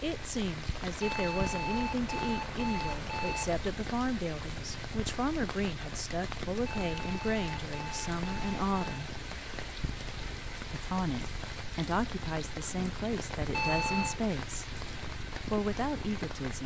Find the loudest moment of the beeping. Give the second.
14 s.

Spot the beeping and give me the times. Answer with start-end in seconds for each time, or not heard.
1.0-3.6, 6.7-9.1, 13.5-14.2.